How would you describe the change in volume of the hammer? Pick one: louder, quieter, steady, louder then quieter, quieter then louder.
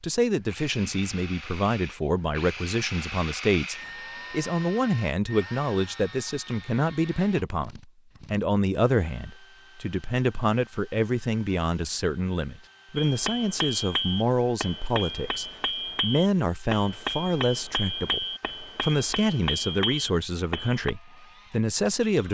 steady.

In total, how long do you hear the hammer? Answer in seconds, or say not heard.
8 s.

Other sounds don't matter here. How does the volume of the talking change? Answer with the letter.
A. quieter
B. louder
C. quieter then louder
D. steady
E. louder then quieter
D.